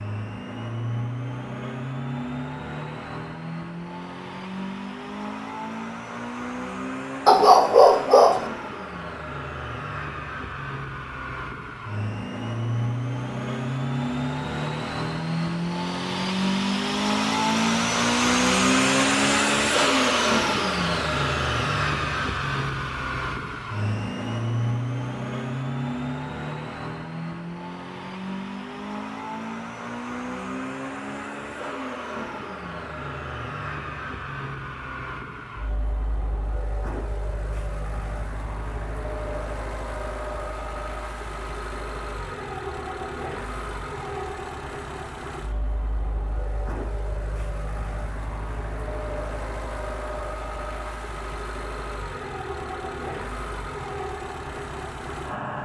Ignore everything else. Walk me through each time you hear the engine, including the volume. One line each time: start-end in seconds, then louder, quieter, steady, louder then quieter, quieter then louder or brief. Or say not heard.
0.0-55.6 louder then quieter.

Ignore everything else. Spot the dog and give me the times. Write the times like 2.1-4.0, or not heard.
7.2-8.5.